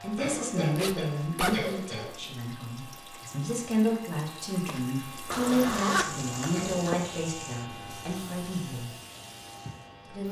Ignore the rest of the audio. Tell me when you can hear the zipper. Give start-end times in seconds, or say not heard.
0.8-1.8, 5.3-7.0.